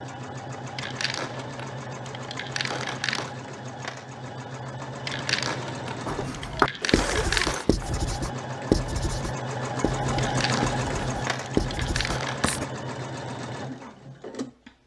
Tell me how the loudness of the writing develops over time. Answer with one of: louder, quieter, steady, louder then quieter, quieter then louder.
quieter then louder.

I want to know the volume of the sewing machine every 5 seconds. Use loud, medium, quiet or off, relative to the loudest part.
medium, loud, loud.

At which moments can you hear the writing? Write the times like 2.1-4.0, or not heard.
6.0-12.7.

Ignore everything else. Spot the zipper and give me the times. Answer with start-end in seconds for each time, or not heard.
6.8-8.0.